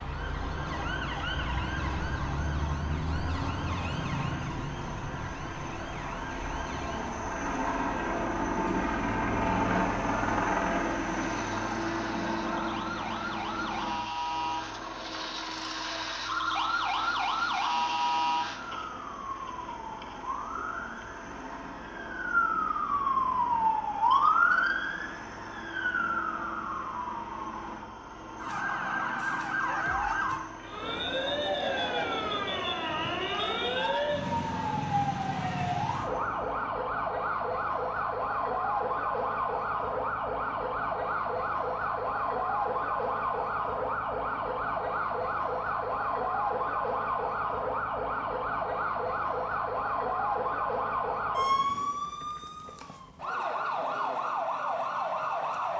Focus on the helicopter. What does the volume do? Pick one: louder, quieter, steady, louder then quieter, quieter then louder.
louder then quieter.